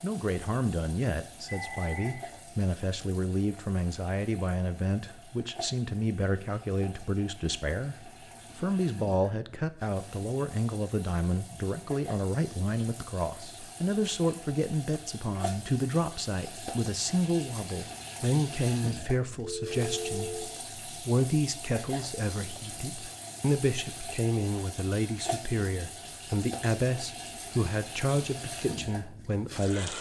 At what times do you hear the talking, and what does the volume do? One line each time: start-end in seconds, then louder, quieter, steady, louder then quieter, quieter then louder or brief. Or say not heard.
0.0-29.9 steady.